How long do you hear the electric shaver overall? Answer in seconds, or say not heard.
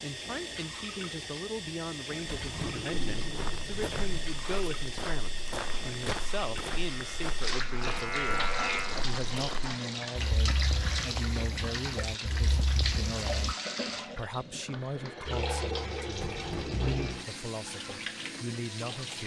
2 s.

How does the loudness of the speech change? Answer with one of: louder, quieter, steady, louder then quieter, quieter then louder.
steady.